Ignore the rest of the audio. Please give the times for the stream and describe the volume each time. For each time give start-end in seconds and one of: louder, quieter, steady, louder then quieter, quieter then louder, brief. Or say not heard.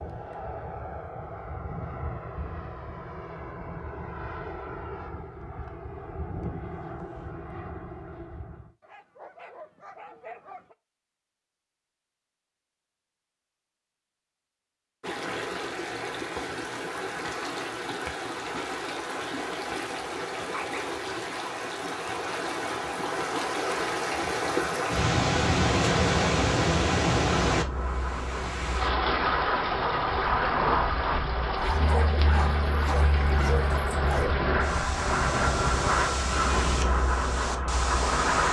15.0-38.4 louder then quieter.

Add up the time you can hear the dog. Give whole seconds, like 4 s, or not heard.
5 s.